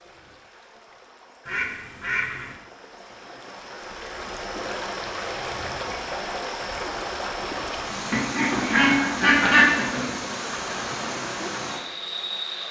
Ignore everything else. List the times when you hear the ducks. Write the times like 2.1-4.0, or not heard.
1.4-2.5, 8.1-10.1.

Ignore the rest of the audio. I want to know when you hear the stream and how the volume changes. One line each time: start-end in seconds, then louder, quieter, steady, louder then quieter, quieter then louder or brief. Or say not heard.
0.0-12.6 louder.